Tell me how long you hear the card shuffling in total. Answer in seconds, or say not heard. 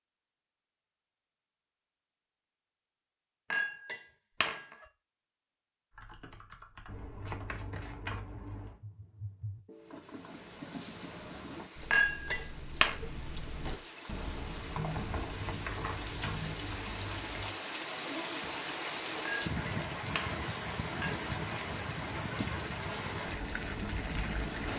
4 s.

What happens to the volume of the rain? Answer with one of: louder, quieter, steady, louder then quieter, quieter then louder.
louder.